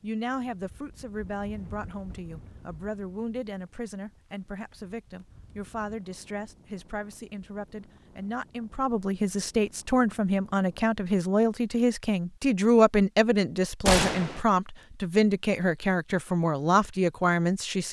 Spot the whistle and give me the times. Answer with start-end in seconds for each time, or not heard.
not heard.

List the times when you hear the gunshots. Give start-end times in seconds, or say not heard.
13.8-14.4.